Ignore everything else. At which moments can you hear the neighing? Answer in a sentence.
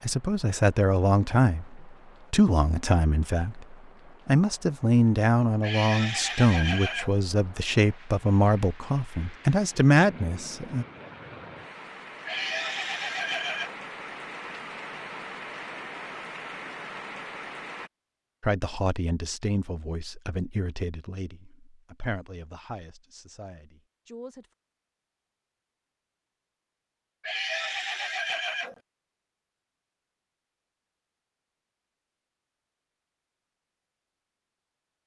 The neighing can be heard from 5.6 to 7.2 s, from 12.2 to 13.8 s and from 27.2 to 28.8 s.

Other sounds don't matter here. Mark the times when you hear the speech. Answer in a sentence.
The speech can be heard from 0.0 to 10.8 s and from 18.4 to 24.5 s.